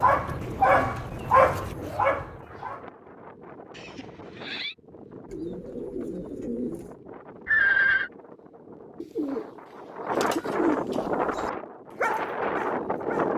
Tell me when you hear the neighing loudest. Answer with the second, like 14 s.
8 s.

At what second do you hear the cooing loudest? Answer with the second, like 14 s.
11 s.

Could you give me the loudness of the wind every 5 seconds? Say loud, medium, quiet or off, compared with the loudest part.
quiet, quiet, loud.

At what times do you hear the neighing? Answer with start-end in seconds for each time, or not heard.
3.7-4.8, 7.5-8.1.